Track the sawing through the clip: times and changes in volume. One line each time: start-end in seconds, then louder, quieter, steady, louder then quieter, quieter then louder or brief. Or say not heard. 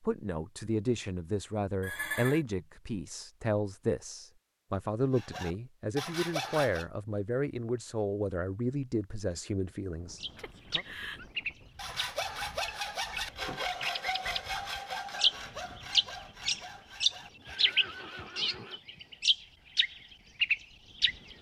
5.1-6.8 brief
11.8-18.4 quieter.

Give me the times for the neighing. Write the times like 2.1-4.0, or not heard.
1.8-2.5, 10.3-11.2, 17.4-18.8.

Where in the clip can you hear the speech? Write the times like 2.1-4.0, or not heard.
0.0-10.8.